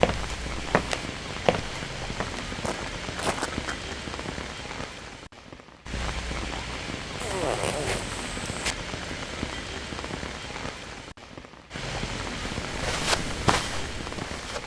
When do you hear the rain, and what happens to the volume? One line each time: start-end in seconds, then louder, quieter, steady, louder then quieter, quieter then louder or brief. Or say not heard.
0.0-14.6 steady.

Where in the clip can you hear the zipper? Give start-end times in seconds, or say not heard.
7.2-8.8.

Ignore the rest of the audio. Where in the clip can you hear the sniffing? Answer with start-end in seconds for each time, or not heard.
not heard.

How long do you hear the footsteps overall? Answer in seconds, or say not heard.
6 s.